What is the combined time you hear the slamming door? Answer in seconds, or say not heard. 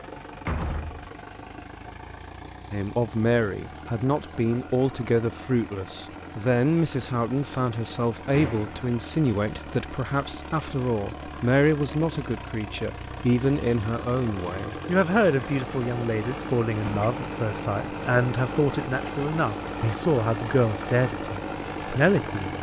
2 s.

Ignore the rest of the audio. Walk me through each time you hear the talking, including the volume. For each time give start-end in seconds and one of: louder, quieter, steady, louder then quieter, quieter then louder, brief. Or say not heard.
2.7-22.5 steady.